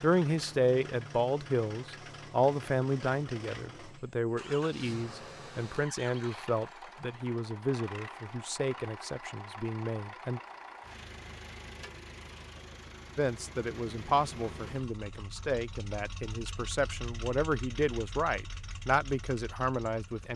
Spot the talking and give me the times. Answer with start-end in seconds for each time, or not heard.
0.0-10.4, 13.2-20.3.